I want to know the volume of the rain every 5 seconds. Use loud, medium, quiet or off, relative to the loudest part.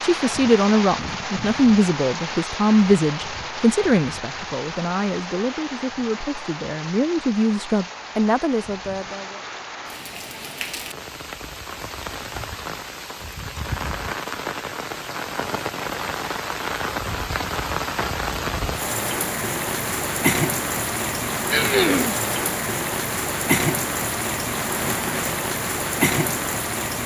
medium, medium, medium, loud, loud, loud.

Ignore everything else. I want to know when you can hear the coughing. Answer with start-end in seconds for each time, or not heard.
21.5-22.1.